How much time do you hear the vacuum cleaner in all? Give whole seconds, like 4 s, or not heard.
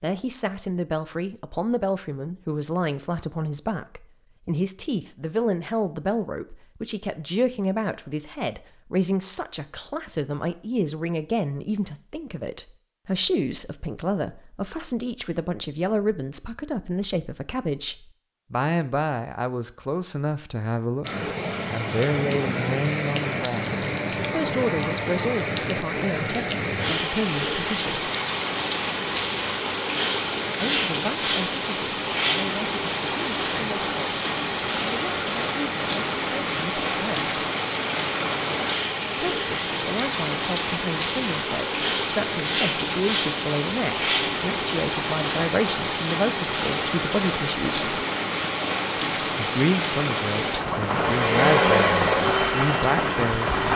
3 s.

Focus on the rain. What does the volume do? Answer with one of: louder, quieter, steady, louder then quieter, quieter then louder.
steady.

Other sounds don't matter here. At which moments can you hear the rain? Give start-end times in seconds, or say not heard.
21.0-53.7.